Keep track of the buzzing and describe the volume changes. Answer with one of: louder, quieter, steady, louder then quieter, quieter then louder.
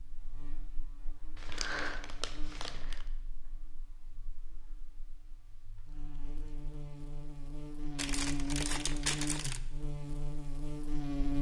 quieter then louder.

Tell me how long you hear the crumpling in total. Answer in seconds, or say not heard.
3 s.